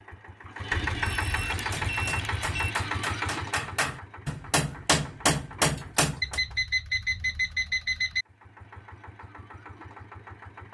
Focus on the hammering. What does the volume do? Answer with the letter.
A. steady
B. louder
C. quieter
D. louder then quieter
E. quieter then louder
B.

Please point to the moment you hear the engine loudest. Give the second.
1 s.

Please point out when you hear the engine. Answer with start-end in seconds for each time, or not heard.
0.0-6.7, 8.2-10.6.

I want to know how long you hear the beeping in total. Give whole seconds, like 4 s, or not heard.
4 s.